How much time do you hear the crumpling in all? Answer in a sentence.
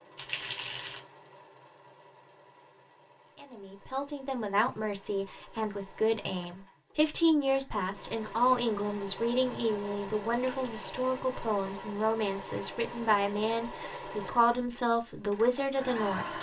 The crumpling can be heard for 2 seconds in total.